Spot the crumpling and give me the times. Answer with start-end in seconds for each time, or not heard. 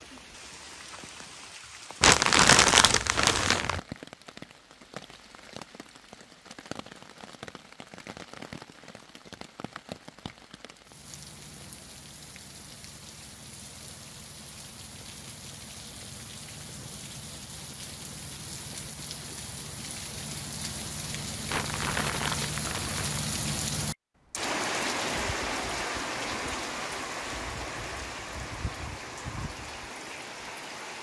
2.0-3.8, 21.4-23.2.